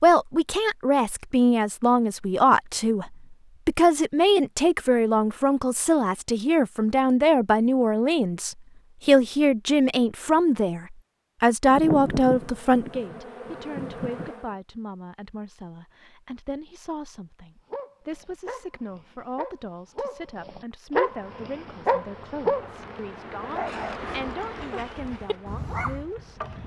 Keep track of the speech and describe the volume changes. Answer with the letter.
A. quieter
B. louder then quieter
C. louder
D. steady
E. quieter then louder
A.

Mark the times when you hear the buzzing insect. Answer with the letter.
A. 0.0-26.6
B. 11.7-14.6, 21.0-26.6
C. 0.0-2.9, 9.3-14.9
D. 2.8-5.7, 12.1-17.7
B.